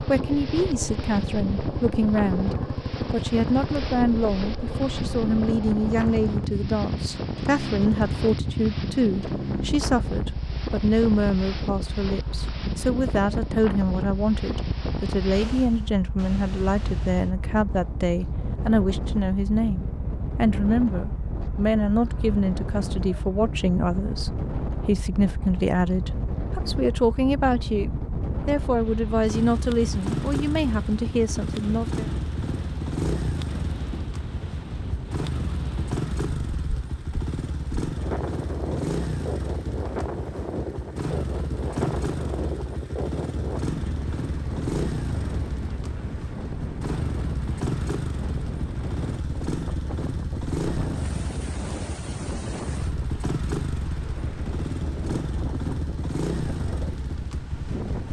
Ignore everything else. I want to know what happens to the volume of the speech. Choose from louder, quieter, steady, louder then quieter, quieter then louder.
steady.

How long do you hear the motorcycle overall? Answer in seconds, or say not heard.
58 s.